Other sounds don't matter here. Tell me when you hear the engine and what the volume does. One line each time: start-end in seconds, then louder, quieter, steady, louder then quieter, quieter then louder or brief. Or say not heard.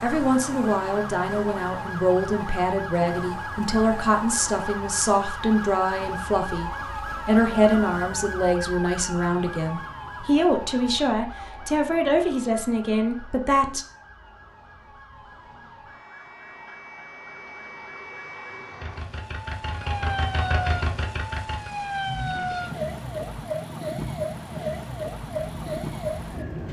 18.7-26.6 quieter.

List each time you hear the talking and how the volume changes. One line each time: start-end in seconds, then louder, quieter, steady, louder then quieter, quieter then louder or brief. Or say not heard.
0.0-13.8 steady.